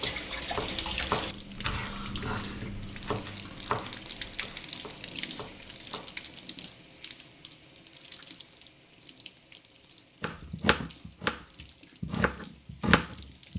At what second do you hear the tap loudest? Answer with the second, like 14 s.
1 s.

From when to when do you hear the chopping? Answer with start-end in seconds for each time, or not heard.
0.0-6.2, 10.2-13.5.